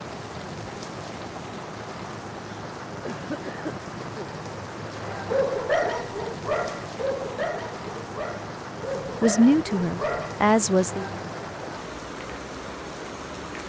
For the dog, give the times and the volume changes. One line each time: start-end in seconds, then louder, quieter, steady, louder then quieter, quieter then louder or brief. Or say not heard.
5.1-10.4 quieter.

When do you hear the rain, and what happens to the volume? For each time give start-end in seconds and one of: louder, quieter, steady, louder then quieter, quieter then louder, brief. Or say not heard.
0.0-13.6 steady.